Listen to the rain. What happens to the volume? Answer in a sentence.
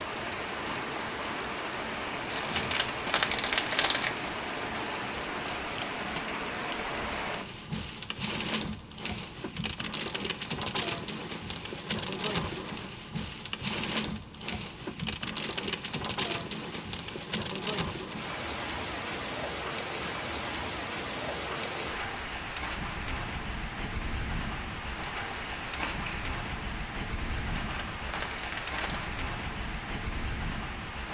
The volume of the rain stays about the same.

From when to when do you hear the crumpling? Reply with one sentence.
You can hear the crumpling from 2.3 to 4.2 s and from 27.5 to 29.1 s.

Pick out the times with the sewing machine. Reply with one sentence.
You can't hear the sewing machine here.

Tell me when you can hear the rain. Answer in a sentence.
You can hear the rain from 0.0 to 31.0 s.